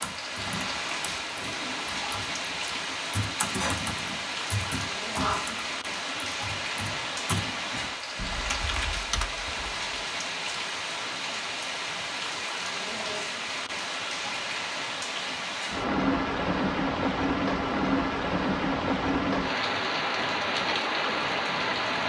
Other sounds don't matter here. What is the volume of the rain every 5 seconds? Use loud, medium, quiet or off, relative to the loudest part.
medium, medium, medium, loud, loud.